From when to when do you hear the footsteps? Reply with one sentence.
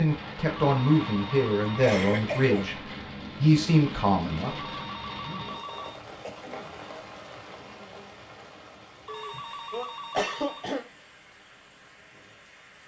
The footsteps can't be heard in this clip.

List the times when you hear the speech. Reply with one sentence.
The speech can be heard from 0.0 to 4.7 s.